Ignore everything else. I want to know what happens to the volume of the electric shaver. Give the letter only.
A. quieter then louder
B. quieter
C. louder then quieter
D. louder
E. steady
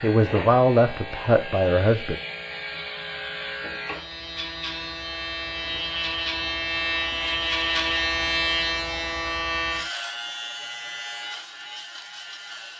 C.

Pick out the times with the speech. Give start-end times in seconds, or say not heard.
0.0-2.1.